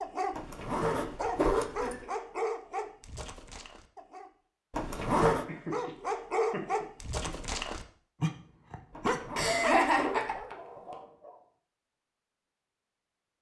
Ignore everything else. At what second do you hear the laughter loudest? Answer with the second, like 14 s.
10 s.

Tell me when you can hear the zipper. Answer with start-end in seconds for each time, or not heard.
0.3-2.0, 4.7-5.5, 8.9-10.4.